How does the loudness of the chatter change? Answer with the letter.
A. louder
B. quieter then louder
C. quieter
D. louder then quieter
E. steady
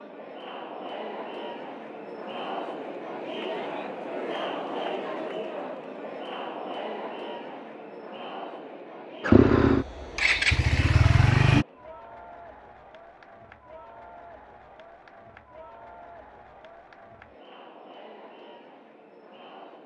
C.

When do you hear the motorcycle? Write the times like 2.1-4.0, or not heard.
9.2-11.7.